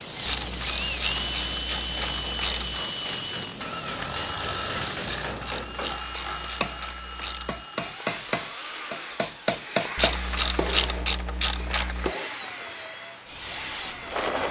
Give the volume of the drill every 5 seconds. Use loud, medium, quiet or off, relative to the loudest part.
loud, medium, medium.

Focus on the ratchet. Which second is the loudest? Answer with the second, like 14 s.
11 s.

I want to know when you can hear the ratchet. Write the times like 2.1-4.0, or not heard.
0.2-2.8, 5.2-7.6, 9.9-12.1.